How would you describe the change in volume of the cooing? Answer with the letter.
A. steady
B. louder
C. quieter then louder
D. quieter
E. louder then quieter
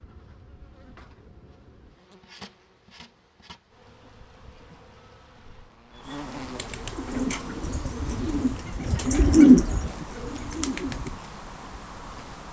E.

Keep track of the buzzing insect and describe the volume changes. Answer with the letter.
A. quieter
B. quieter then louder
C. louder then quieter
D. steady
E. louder
E.